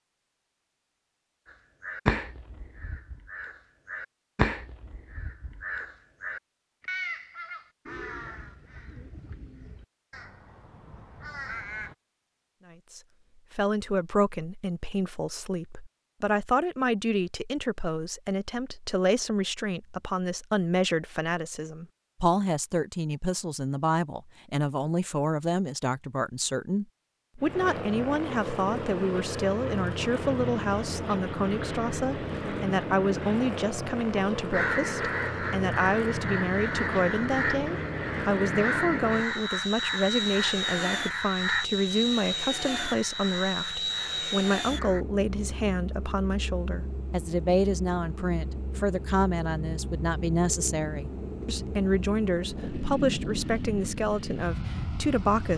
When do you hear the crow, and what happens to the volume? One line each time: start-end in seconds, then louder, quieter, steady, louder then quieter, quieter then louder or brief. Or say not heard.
1.4-11.9 quieter
34.5-45.0 quieter.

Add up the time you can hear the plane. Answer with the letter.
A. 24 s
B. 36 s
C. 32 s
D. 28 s
D.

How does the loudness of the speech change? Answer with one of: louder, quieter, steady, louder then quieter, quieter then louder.
steady.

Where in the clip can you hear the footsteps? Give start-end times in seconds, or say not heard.
not heard.